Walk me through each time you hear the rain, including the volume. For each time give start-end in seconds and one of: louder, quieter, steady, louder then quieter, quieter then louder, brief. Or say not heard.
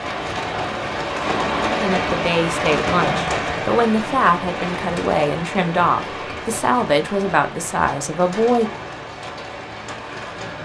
0.0-10.6 quieter.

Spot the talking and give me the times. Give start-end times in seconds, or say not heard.
1.8-8.7.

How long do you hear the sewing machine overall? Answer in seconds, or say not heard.
not heard.